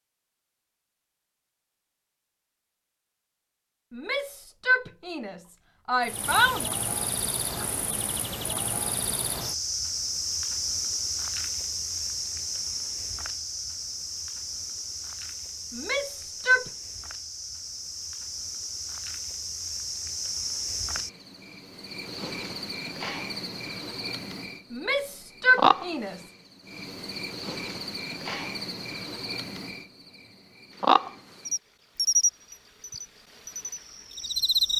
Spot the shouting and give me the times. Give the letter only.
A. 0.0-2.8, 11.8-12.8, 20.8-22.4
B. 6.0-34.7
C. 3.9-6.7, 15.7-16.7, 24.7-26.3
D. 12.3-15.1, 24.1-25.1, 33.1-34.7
C.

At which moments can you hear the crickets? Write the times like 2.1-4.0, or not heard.
6.0-34.7.